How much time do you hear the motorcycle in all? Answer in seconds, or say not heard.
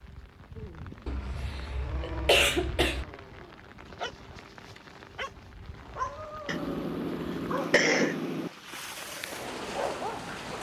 not heard.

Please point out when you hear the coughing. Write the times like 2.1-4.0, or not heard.
1.1-3.0, 6.5-8.5.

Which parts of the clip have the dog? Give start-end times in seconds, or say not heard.
0.6-10.3.